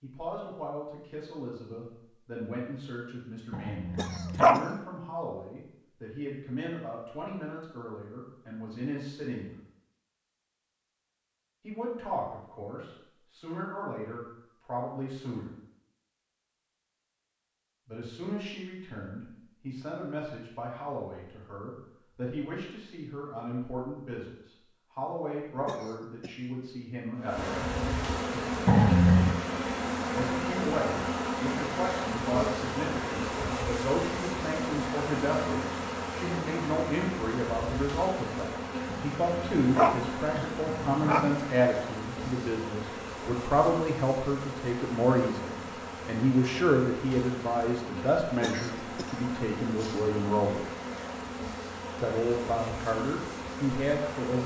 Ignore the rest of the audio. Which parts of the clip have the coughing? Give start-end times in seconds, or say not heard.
4.0-4.8, 25.6-26.6, 48.4-50.0.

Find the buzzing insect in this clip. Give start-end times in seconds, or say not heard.
27.1-54.4.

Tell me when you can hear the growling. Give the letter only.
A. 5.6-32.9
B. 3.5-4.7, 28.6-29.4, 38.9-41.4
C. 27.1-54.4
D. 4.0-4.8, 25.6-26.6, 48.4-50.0
B.